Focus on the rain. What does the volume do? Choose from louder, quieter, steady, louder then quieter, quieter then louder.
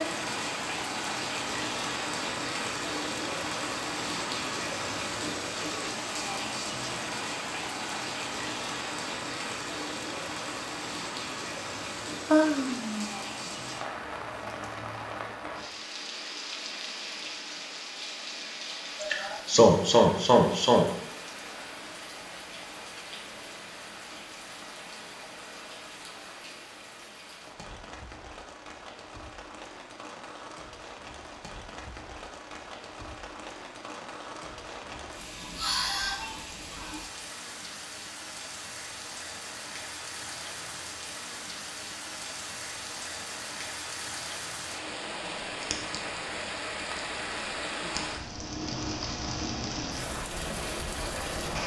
quieter then louder.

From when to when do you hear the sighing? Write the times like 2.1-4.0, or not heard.
12.3-13.5, 19.0-20.9, 35.4-37.0.